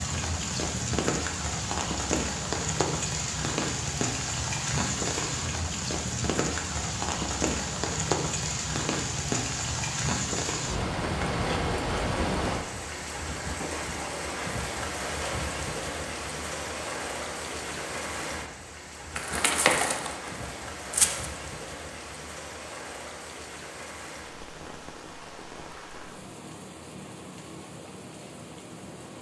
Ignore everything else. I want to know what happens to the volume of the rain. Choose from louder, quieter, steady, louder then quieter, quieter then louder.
quieter.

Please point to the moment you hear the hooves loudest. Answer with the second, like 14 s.
20 s.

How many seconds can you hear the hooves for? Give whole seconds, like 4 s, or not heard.
2 s.